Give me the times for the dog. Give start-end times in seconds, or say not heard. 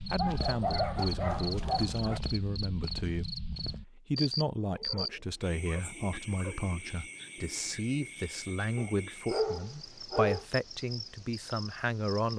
0.1-2.2, 4.7-6.7, 8.8-10.4.